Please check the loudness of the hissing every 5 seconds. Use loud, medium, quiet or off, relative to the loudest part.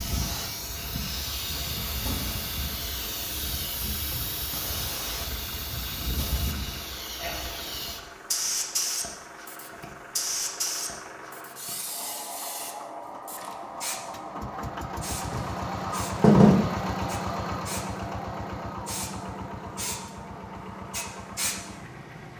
loud, loud, loud, medium, medium.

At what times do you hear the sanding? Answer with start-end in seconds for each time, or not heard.
15.3-16.6.